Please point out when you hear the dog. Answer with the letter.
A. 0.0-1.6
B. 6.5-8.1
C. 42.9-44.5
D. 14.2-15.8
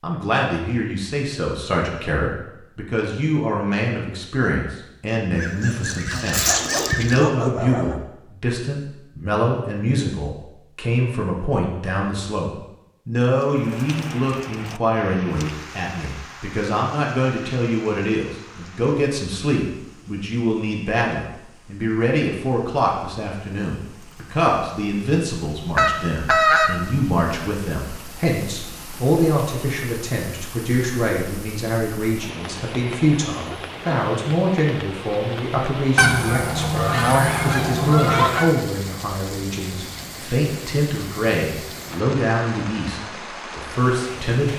B.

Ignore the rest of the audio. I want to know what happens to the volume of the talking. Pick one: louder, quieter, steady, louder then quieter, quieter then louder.
steady.